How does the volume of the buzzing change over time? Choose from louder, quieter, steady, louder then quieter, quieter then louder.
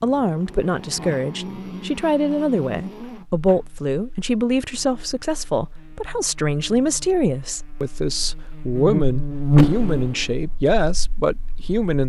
quieter then louder.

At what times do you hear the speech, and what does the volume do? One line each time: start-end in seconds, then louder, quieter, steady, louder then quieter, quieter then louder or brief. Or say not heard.
0.0-12.0 steady.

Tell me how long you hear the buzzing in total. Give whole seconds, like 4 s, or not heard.
12 s.